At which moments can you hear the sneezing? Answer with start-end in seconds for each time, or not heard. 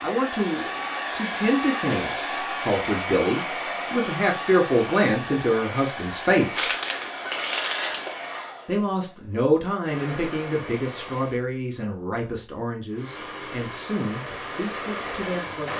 6.5-8.2.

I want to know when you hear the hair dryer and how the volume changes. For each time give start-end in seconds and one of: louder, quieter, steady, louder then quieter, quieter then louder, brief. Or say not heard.
0.0-11.4 quieter
12.9-15.7 brief.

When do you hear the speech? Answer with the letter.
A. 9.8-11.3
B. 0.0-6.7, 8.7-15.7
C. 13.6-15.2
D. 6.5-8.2
B.